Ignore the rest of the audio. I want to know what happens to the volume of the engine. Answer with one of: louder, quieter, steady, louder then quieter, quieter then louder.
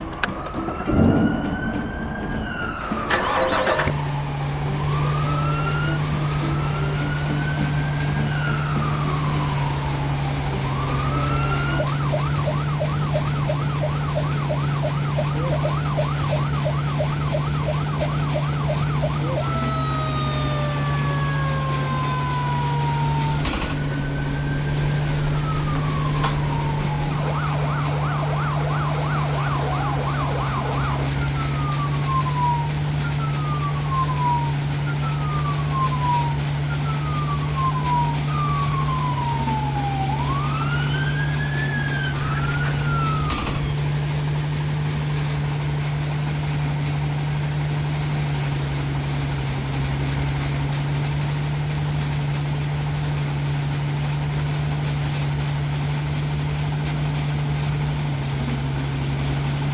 steady.